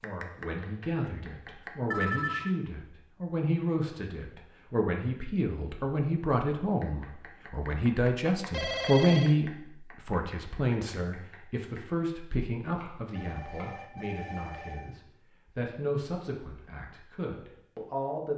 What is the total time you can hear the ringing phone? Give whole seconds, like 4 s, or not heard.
3 s.